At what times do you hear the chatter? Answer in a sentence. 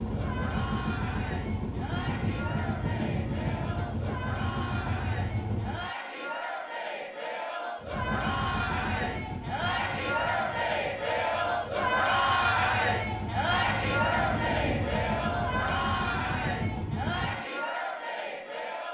You can hear the chatter from 0.0 to 18.8 s.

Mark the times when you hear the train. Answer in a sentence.
The train can be heard from 0.0 to 6.0 s and from 7.8 to 17.4 s.